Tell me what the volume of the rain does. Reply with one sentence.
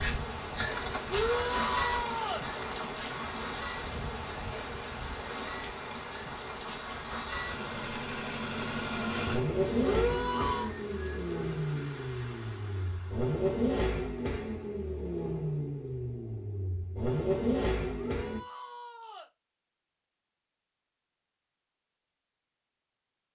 The loudness of the rain goes down.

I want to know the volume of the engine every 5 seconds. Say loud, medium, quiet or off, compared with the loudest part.
loud, loud, loud, loud, off.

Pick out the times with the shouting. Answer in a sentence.
The shouting can be heard from 1.1 to 2.5 s, from 9.8 to 10.7 s and from 17.9 to 19.3 s.